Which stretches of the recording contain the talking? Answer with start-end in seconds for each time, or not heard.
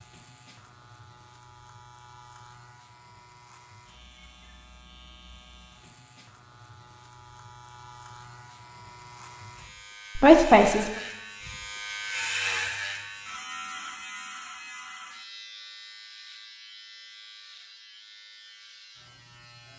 10.2-10.9.